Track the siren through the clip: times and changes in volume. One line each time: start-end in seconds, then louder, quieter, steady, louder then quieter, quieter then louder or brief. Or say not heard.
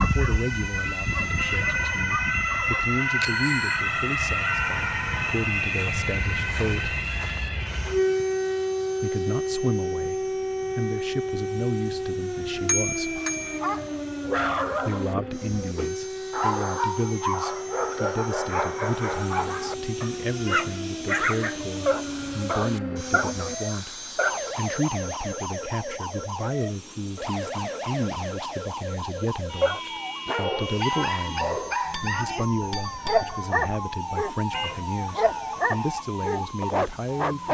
0.0-37.5 quieter.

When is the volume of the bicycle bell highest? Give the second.
13 s.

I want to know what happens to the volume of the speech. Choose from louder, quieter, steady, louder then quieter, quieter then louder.
steady.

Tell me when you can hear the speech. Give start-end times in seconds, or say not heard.
0.0-7.0, 9.0-13.2, 14.8-37.5.